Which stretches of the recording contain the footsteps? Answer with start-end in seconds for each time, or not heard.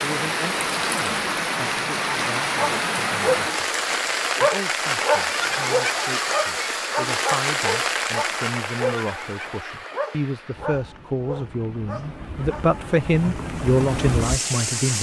not heard.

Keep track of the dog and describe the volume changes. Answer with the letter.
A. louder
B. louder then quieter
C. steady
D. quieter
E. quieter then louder
D.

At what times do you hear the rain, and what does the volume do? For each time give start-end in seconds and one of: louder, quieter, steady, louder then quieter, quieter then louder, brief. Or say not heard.
0.0-14.9 quieter then louder.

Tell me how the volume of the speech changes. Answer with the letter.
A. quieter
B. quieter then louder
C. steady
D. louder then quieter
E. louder
E.